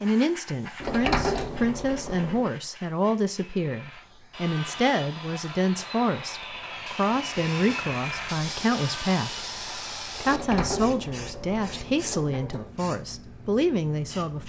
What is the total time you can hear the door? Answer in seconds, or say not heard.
4 s.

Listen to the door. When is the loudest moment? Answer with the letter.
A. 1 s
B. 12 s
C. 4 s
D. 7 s
A.